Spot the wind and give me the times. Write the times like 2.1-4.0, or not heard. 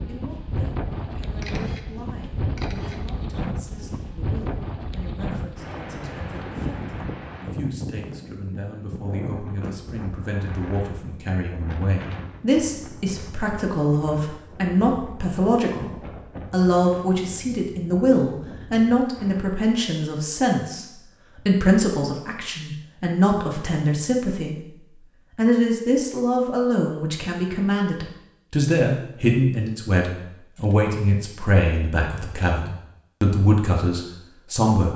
0.0-19.4.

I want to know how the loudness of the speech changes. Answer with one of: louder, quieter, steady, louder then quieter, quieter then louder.
louder.